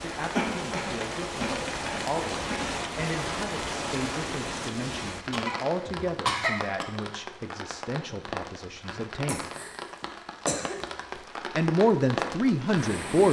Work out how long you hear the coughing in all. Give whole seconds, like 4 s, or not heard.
6 s.